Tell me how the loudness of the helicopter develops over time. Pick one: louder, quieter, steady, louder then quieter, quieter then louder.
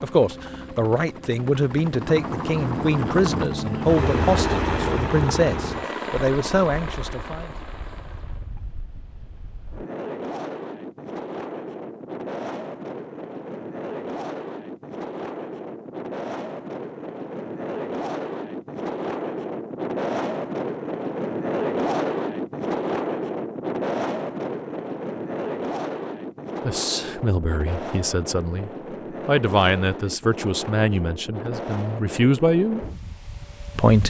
louder then quieter.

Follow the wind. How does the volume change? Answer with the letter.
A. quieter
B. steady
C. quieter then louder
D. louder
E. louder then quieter
E.